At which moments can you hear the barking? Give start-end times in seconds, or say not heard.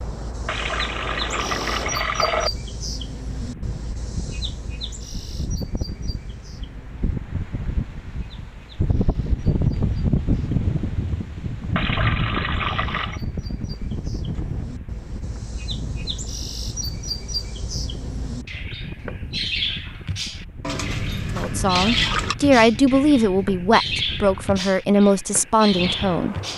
not heard.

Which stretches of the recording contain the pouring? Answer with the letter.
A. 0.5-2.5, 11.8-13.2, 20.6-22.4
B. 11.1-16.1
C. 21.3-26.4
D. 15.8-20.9
A.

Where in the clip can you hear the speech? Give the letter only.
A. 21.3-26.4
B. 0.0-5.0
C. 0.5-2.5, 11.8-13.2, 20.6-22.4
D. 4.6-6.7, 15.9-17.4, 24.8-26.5
A.